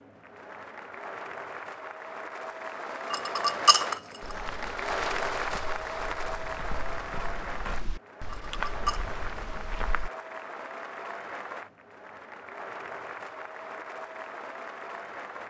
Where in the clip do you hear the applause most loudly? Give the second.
5 s.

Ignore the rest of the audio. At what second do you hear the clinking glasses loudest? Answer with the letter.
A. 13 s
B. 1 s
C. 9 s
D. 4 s
D.